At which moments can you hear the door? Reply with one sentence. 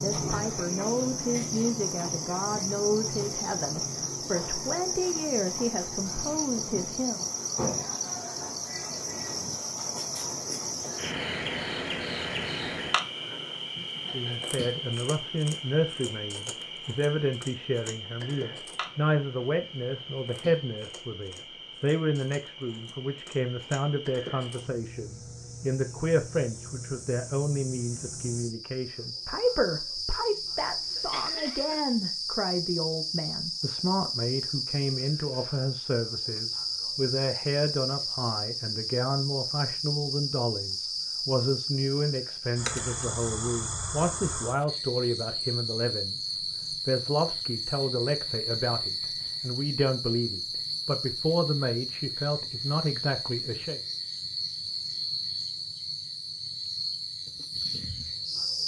You can't hear the door here.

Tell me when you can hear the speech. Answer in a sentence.
The speech can be heard from 0.0 to 7.2 s and from 14.1 to 53.8 s.